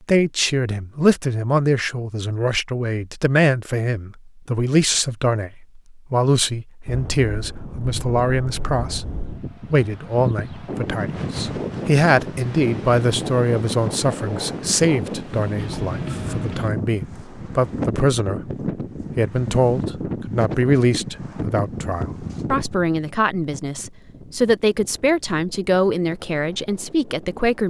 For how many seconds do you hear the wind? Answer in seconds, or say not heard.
21 s.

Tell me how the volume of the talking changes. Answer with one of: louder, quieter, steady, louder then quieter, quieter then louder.
steady.